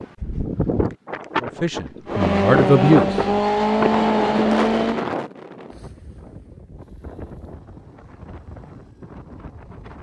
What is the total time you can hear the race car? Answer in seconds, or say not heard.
3 s.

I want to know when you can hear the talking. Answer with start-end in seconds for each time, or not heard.
1.4-3.2.